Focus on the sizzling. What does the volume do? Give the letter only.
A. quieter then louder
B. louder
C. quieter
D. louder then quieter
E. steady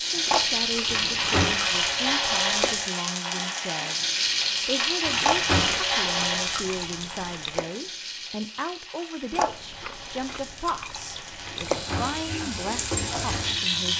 A.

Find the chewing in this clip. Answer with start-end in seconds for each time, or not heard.
0.2-2.9, 5.2-7.7, 9.3-11.8.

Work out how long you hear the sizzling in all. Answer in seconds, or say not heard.
14 s.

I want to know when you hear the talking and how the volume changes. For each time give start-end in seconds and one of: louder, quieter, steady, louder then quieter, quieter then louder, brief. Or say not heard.
0.0-13.9 steady.